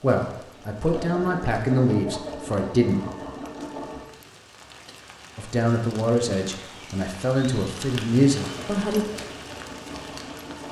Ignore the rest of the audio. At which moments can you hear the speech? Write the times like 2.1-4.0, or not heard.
0.0-3.0, 5.3-9.1.